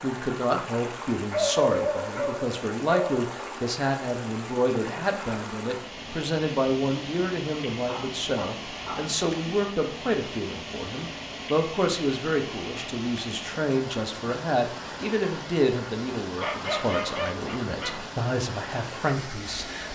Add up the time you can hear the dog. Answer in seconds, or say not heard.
5 s.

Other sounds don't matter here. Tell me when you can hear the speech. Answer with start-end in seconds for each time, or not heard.
0.0-19.9.